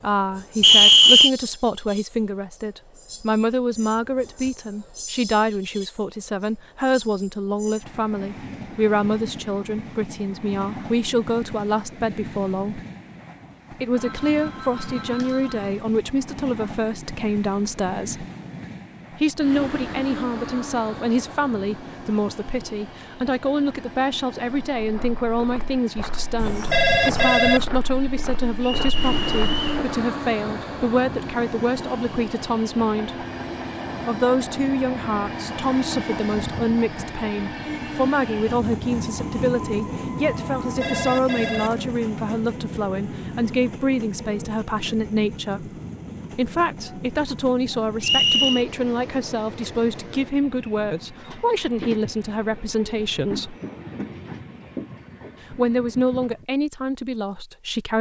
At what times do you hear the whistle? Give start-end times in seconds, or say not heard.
0.6-1.3, 28.6-29.8, 48.0-48.6.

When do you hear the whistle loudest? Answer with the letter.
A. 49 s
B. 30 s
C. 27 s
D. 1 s
D.